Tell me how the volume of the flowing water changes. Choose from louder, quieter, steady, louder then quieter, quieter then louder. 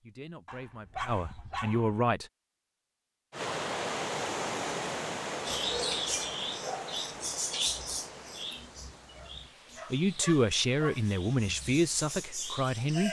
quieter.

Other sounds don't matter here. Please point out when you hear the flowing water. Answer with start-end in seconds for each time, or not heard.
3.3-13.0.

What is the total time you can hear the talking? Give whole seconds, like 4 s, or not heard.
5 s.